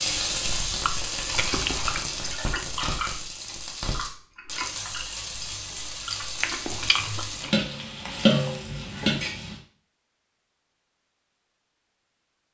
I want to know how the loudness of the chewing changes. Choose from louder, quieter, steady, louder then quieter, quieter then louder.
quieter then louder.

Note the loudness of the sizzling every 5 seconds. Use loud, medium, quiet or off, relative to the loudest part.
loud, loud, off.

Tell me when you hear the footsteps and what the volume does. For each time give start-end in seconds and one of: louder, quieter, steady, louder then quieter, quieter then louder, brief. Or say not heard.
not heard.